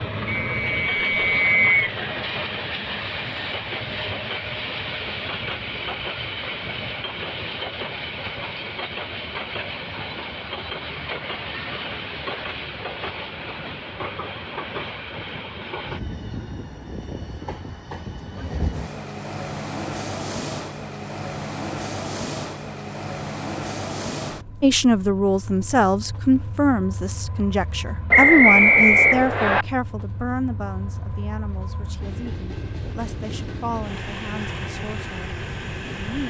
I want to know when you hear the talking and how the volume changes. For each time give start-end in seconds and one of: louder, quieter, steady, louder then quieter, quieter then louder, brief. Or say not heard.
24.6-36.2 quieter.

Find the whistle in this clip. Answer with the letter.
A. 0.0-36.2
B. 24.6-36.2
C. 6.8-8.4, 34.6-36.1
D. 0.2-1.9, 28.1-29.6
D.